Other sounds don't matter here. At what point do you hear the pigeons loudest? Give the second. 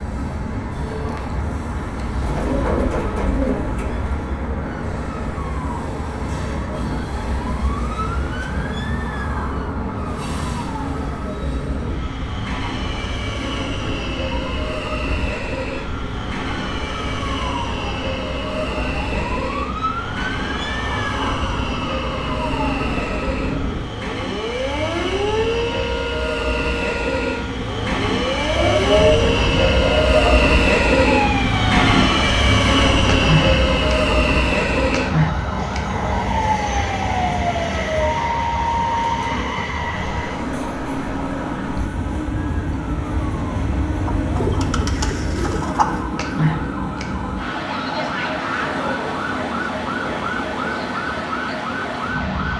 29 s.